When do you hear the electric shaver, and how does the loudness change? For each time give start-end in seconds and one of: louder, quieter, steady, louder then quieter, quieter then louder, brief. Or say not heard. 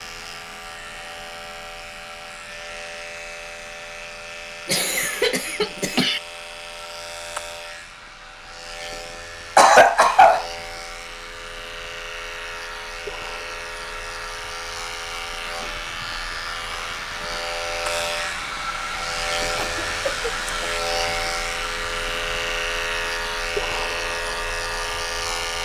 0.0-25.5 louder.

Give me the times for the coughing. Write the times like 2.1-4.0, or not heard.
4.7-6.2, 9.6-10.4, 19.1-20.7.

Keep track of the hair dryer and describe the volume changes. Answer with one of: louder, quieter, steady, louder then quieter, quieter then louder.
louder.